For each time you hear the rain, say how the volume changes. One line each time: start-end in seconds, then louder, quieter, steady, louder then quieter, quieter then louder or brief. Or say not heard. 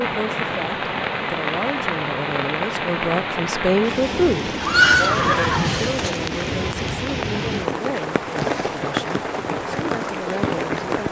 0.0-11.0 steady.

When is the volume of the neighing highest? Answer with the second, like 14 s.
5 s.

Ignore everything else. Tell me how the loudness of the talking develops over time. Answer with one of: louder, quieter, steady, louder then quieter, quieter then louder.
louder then quieter.